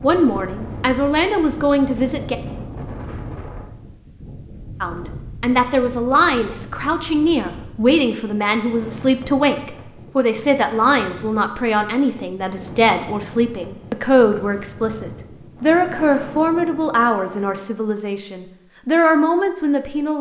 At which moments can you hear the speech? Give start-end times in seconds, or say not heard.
0.0-2.4, 4.8-20.1.